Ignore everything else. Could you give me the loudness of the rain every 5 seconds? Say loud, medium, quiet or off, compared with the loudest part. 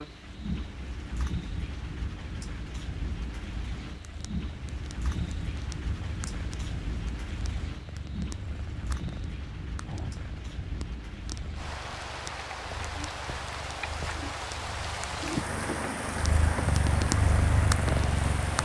medium, medium, medium, loud.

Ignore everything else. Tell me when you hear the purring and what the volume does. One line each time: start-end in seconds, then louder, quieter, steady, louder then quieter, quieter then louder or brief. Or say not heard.
3.9-18.6 louder.